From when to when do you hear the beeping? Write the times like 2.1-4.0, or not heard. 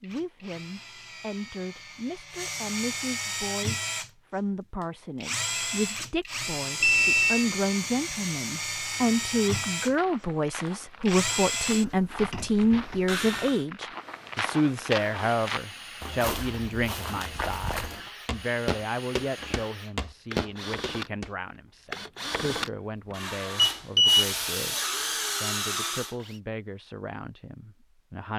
6.8-7.5, 23.6-24.2.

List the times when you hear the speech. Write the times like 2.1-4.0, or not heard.
0.0-28.3.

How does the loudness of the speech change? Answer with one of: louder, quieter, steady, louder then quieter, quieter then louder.
louder then quieter.